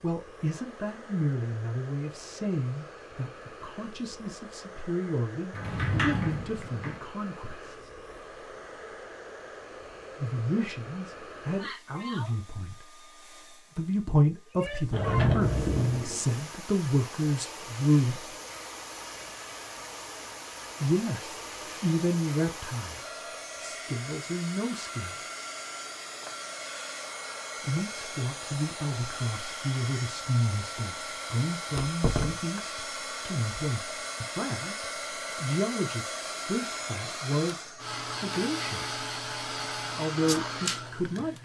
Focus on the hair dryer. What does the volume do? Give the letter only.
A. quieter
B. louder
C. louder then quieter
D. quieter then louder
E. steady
B.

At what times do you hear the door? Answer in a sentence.
You can hear the door from 5.5 to 7.0 s, from 14.9 to 16.2 s and from 31.7 to 32.6 s.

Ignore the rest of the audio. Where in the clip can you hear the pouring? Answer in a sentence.
You can't hear the pouring here.